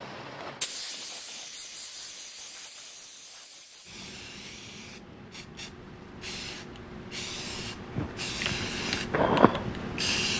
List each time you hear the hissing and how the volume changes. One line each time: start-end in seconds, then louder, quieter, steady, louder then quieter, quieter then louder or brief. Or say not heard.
0.0-10.3 quieter then louder.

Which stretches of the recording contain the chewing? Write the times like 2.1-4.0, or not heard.
8.0-10.1.